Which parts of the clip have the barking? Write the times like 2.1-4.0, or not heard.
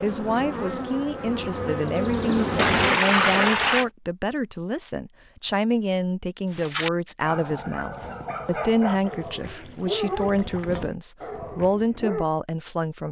6.5-12.2.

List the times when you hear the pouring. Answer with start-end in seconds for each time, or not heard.
2.5-3.9, 8.9-10.9.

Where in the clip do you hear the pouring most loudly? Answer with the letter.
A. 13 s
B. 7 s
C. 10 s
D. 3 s
D.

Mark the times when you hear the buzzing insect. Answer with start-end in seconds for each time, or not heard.
0.0-3.9.